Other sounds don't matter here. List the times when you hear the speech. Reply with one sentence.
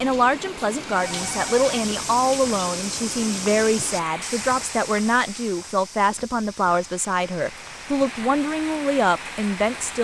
The speech can be heard from 0.0 to 9.9 s.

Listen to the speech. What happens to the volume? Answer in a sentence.
The volume of the speech stays about the same.